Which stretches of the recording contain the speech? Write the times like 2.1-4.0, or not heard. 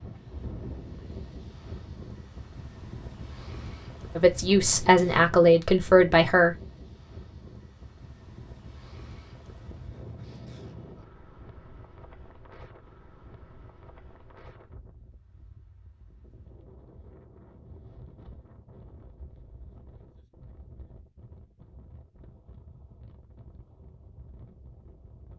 4.2-6.5.